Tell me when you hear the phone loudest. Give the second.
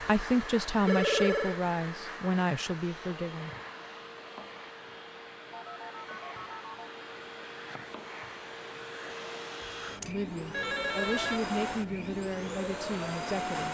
1 s.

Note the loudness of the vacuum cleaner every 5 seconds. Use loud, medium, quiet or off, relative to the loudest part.
medium, medium, loud.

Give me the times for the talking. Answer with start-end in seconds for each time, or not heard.
0.0-3.5, 10.1-13.6.